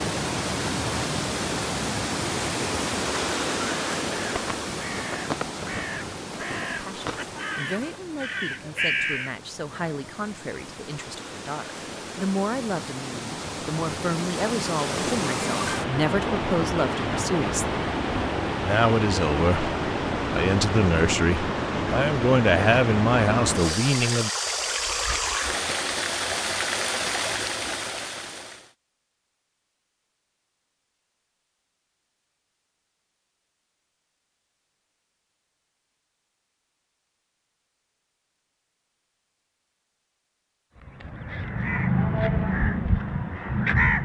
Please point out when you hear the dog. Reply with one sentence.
The dog can't be heard in this clip.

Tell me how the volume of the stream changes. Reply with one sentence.
The volume of the stream goes down, then up.